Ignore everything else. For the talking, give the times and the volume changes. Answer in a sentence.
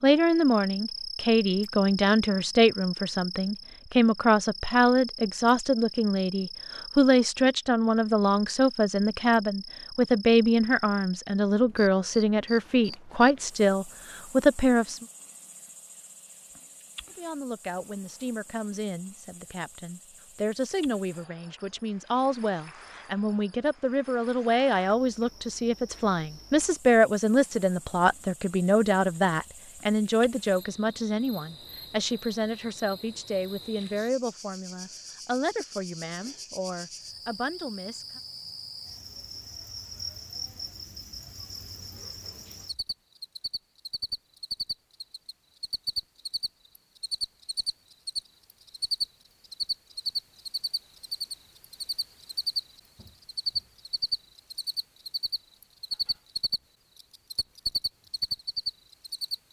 You can hear the talking from 0.0 to 15.1 s, at a steady volume; and from 17.1 to 38.2 s, getting louder then quieter.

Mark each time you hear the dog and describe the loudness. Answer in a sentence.
The dog can't be heard in this clip.